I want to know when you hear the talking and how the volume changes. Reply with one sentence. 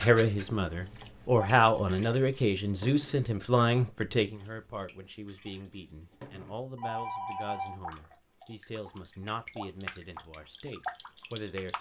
The talking can be heard from 0.0 to 11.7 s, getting quieter.